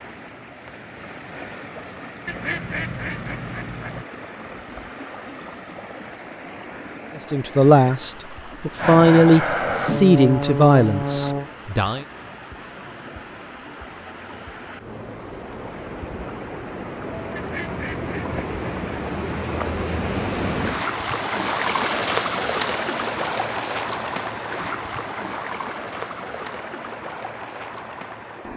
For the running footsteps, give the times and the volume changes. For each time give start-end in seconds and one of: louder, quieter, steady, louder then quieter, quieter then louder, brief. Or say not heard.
not heard.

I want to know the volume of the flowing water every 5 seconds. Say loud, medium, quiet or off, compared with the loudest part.
quiet, quiet, quiet, medium, loud, medium.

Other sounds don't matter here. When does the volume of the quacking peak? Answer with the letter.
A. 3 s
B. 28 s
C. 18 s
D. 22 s
A.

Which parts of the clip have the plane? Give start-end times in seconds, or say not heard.
8.8-11.5.